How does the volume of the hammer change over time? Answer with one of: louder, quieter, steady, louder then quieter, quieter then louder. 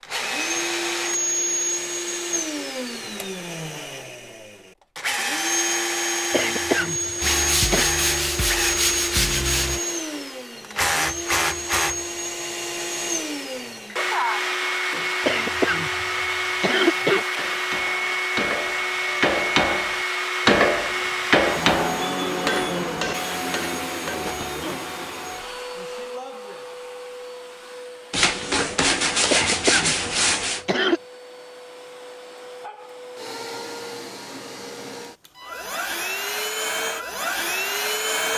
louder then quieter.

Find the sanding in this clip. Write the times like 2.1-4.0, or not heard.
7.2-9.8, 28.1-30.6.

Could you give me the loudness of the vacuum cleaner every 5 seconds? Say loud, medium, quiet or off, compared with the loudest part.
loud, loud, loud, loud, loud, medium, quiet, loud.